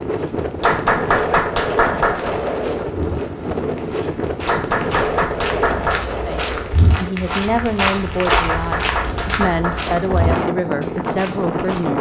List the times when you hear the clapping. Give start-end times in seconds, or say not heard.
0.6-2.4, 4.5-6.2, 8.2-9.9.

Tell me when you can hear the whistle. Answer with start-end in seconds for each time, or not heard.
not heard.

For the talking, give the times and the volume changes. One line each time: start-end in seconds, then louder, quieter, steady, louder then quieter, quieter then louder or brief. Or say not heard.
6.2-11.9 steady.